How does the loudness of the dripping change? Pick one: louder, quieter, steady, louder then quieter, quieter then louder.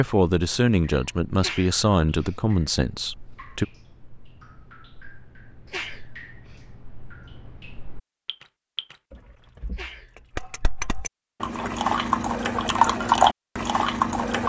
louder.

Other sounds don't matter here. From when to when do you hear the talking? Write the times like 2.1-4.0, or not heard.
0.0-3.6.